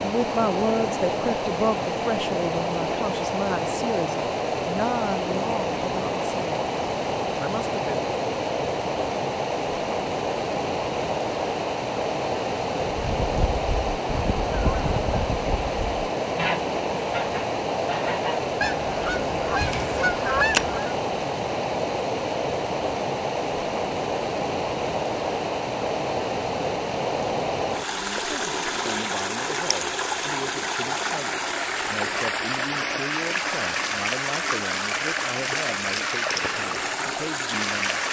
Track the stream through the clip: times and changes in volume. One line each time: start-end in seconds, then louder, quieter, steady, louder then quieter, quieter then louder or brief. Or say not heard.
0.0-38.0 steady.